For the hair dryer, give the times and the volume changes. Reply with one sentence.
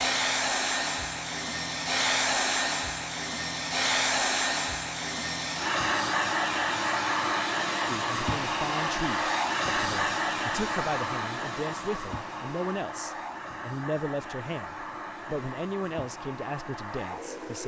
You can hear the hair dryer from 0.0 to 17.6 s, getting quieter.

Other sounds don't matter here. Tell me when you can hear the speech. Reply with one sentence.
You can hear the speech from 7.8 to 17.6 s.